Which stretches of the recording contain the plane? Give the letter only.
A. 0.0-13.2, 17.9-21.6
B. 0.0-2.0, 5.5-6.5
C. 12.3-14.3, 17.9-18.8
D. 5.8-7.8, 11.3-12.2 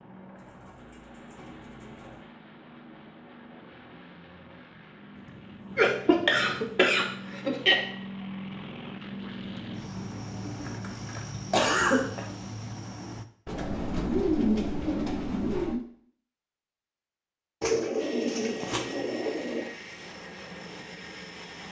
A.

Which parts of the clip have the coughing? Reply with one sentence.
You can hear the coughing from 5.8 to 7.8 s and from 11.3 to 12.2 s.